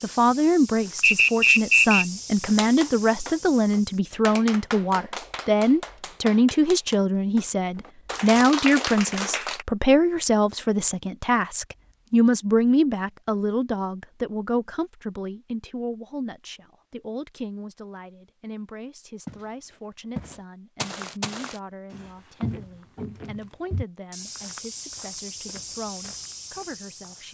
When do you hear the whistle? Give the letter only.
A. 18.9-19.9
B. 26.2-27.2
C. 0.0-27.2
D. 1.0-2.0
D.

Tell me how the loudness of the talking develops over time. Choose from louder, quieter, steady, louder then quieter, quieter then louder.
quieter.